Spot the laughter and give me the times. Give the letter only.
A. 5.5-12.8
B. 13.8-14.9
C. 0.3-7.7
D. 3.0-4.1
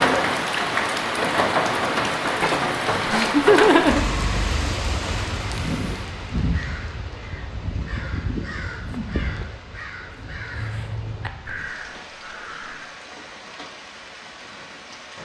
D.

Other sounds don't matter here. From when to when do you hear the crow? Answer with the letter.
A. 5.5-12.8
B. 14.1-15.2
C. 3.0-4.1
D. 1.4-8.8
A.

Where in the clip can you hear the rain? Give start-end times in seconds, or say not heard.
0.0-15.2.